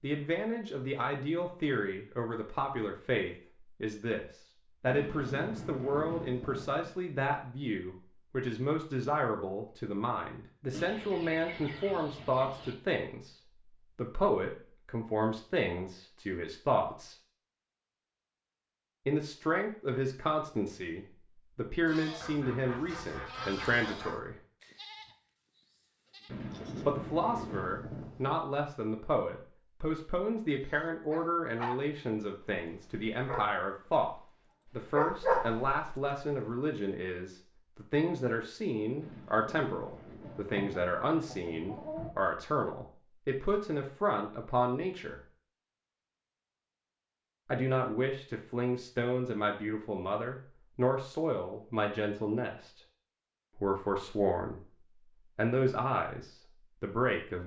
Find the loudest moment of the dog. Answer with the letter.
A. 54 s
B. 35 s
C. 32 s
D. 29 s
B.